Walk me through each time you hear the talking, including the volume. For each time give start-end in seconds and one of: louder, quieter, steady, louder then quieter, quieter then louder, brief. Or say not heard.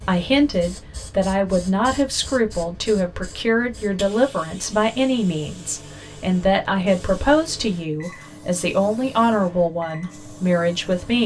0.1-11.2 steady.